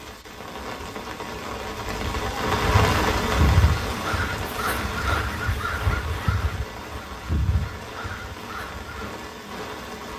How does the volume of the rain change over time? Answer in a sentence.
The loudness of the rain goes up, then down.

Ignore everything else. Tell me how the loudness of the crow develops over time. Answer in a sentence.
The loudness of the crow goes down.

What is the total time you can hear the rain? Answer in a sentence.
The rain can be heard for 10 seconds in total.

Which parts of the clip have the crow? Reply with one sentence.
The crow can be heard from 2.6 to 9.2 s.